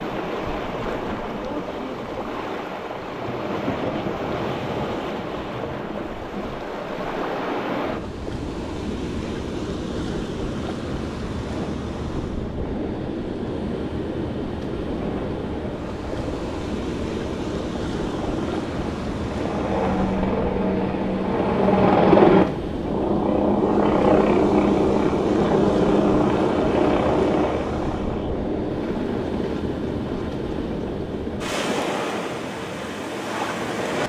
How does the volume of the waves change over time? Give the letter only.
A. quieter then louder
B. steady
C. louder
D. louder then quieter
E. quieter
B.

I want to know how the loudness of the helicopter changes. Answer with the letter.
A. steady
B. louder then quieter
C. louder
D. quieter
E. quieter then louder
B.